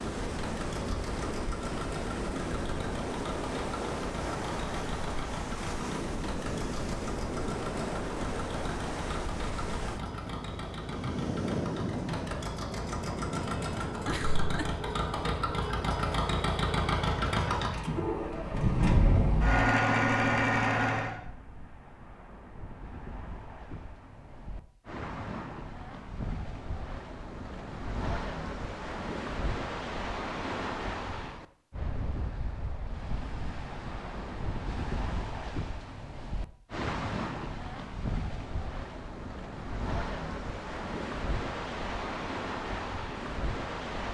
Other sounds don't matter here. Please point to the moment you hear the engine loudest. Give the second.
20 s.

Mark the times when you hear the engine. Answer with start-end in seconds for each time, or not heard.
0.0-21.1.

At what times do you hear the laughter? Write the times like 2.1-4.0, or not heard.
14.1-14.8.